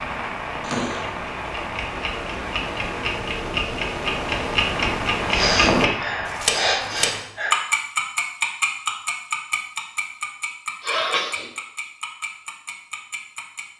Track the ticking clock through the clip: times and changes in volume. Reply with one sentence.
You can hear the ticking clock from 0.0 to 13.7 s, getting louder then quieter.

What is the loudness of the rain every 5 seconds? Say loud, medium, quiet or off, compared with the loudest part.
loud, loud, off.